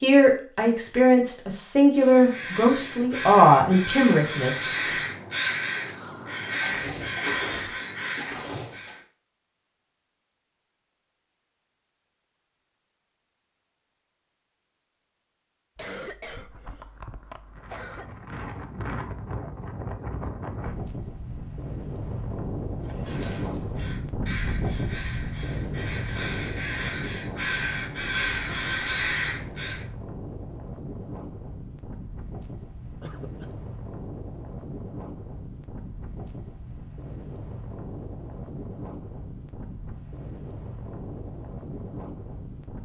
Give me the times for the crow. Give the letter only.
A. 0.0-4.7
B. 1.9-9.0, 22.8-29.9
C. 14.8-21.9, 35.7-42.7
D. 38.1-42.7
B.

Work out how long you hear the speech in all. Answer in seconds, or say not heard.
5 s.